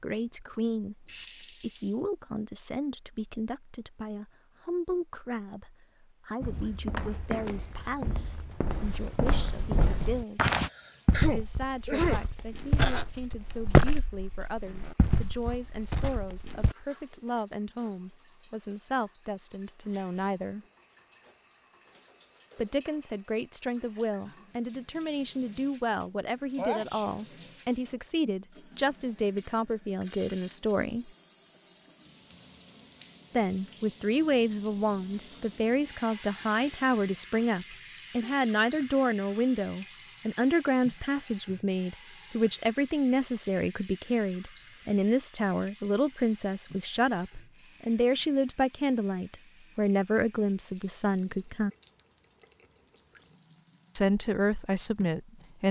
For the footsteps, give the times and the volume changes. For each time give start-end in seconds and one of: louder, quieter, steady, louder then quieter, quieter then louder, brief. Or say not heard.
6.4-16.8 louder then quieter.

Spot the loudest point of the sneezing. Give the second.
12 s.